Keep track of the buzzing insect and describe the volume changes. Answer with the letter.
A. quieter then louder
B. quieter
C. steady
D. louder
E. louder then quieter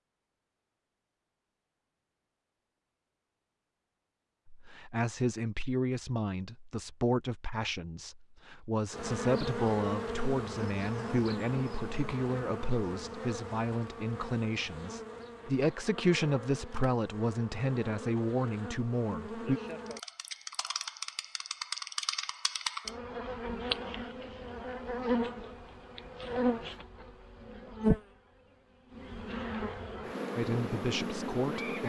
A.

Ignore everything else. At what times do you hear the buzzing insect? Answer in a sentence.
The buzzing insect can be heard from 8.9 to 31.8 s.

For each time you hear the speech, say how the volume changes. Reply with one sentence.
You can hear the speech from 4.5 to 19.6 s, at a steady volume; and briefly from 30.4 to 31.8 s.